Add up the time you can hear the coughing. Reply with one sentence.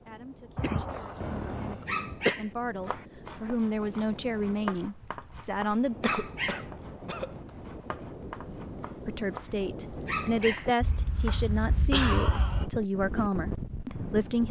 You can hear the coughing for 5 seconds altogether.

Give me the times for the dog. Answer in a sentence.
You can hear the dog from 1.9 to 2.5 s, from 6.0 to 6.7 s and from 10.1 to 10.7 s.